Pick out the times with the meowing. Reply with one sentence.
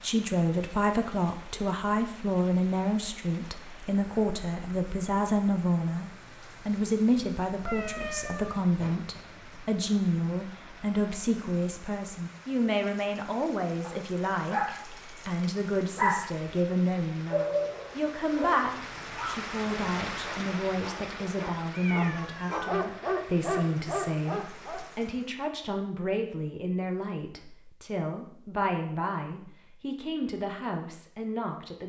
You can hear the meowing from 7.7 to 8.6 s, from 18.6 to 19.4 s and from 21.7 to 22.8 s.